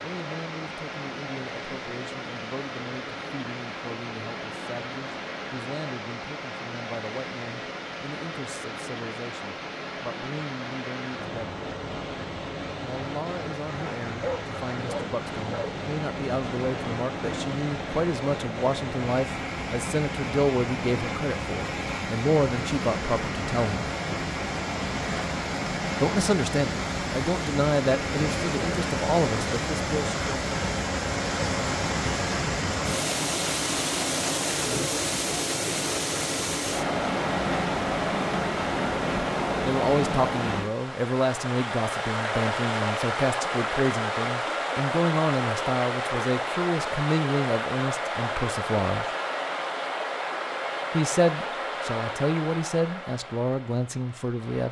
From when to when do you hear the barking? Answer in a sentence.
You can hear the barking from 14.2 to 15.8 s.